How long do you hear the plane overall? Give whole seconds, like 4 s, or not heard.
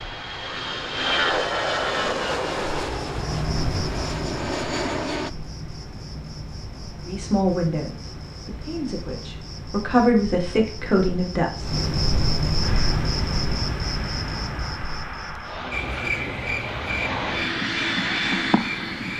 12 s.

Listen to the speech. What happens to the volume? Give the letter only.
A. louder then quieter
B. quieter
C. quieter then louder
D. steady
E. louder
C.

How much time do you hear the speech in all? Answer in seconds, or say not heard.
5 s.